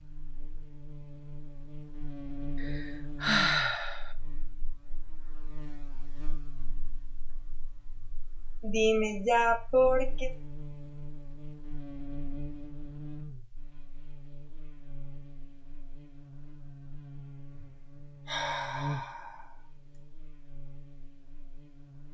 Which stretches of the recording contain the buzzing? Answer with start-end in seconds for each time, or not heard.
0.0-22.0.